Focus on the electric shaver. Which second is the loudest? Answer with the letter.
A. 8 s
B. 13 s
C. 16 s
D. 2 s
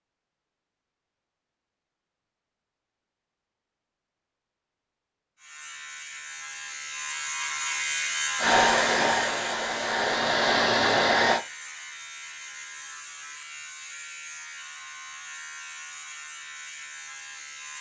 A.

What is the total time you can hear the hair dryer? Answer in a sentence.
The hair dryer can be heard for 3 seconds in total.